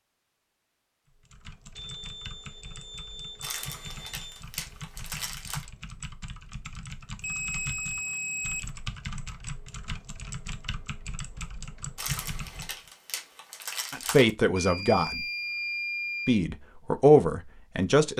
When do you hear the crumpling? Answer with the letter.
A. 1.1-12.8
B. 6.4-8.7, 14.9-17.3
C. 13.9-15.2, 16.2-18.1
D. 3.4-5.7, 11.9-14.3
D.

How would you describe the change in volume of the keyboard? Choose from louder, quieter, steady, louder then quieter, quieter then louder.
louder.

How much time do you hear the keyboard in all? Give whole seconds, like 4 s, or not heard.
12 s.